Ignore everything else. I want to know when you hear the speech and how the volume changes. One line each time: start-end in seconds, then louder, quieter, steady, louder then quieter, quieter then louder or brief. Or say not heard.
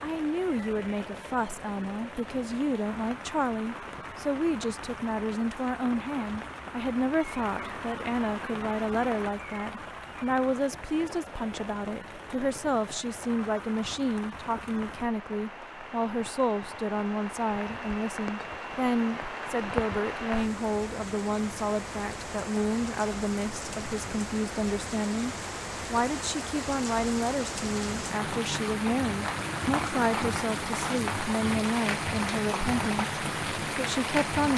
0.0-34.5 steady.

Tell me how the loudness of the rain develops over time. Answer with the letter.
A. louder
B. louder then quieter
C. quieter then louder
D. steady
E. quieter
A.